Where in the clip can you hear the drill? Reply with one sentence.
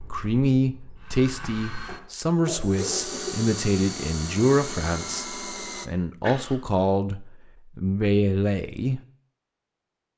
You can hear the drill from 0.0 to 5.9 s.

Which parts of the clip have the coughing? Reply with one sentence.
The coughing can be heard from 2.5 to 3.4 s and from 6.2 to 6.7 s.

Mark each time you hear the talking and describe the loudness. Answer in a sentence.
The talking can be heard from 0.0 to 9.0 s, at a steady volume.